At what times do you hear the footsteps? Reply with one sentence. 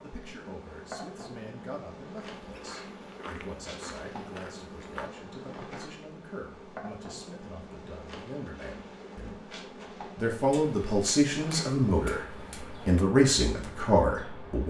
You can hear the footsteps from 2.4 to 5.1 s.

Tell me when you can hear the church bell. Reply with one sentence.
You can't hear the church bell here.